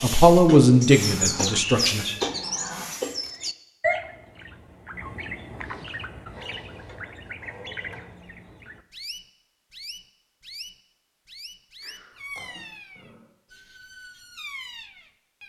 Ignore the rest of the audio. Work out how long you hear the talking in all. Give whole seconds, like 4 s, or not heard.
2 s.